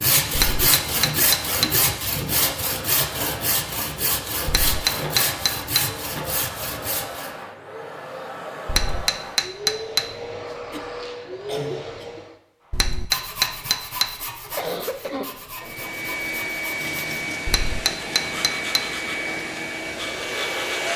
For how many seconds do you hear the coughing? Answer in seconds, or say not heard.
4 s.